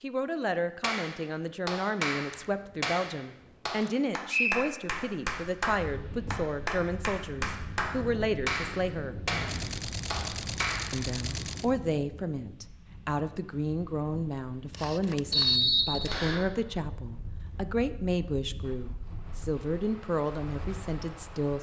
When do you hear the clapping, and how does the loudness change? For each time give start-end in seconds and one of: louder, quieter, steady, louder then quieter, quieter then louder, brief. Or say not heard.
0.8-11.0 steady.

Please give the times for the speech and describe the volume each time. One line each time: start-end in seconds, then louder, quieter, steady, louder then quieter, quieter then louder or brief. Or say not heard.
0.0-9.2 steady
10.9-21.5 steady.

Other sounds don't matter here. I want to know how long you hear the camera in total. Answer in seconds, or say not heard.
5 s.